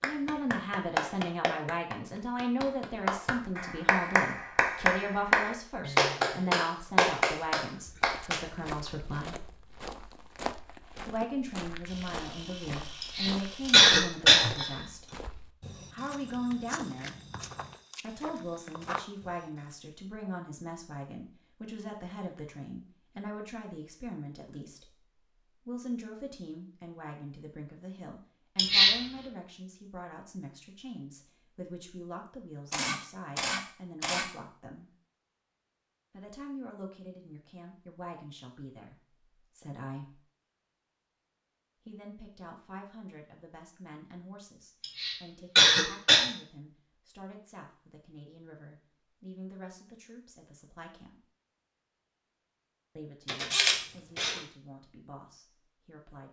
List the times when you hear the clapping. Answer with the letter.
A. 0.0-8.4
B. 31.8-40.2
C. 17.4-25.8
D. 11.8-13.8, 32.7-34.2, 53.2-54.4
A.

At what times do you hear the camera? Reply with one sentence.
You can hear the camera from 11.8 to 13.8 s, from 32.7 to 34.2 s and from 53.2 to 54.4 s.